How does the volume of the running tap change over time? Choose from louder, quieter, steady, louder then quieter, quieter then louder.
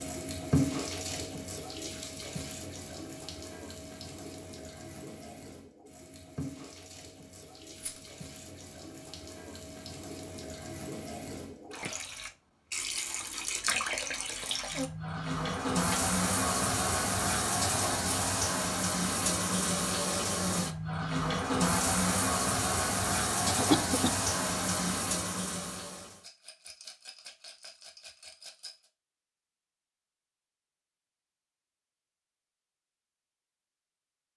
quieter then louder.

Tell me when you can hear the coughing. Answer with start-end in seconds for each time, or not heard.
23.4-24.1.